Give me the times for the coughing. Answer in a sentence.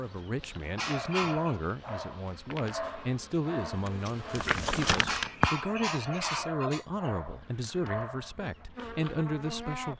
You can hear the coughing from 0.8 to 1.6 s and from 5.0 to 7.1 s.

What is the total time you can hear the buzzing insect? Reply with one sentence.
The buzzing insect can be heard for 10 seconds in total.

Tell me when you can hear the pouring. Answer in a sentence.
You can't hear the pouring here.